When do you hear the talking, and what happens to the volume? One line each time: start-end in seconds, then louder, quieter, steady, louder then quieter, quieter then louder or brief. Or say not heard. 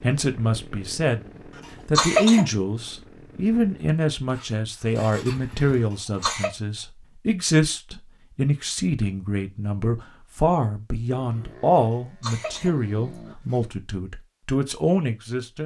0.0-15.6 steady.